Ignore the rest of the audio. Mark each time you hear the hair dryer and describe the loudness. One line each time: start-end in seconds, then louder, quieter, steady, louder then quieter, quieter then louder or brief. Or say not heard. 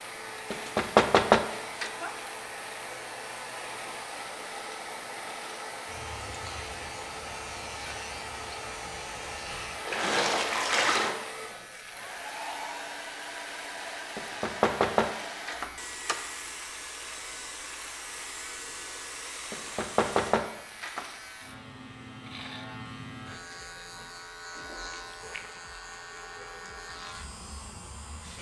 0.0-28.3 quieter.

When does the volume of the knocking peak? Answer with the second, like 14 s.
1 s.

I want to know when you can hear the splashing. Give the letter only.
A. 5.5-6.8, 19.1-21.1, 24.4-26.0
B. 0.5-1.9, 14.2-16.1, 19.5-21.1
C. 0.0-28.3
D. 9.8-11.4
D.